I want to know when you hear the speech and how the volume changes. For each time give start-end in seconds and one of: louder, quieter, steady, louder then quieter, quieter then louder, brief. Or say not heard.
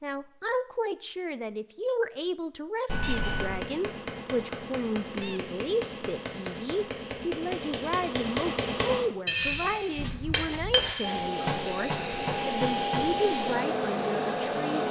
0.0-14.8 steady.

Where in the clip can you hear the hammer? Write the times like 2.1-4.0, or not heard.
3.0-13.2.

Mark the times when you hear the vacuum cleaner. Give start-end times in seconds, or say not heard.
11.0-14.8.